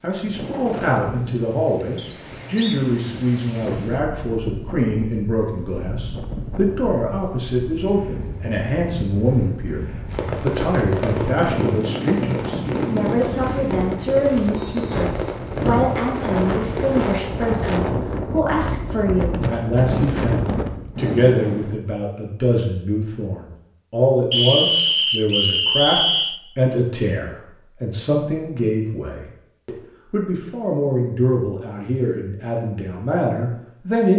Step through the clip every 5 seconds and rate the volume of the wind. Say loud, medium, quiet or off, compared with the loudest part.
medium, medium, loud, loud, loud, off, off.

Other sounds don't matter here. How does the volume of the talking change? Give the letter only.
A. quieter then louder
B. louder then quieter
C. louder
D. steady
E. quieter
D.